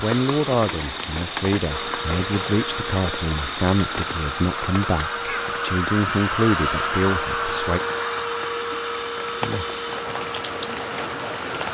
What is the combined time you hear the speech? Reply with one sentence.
The speech can be heard for 8 seconds in total.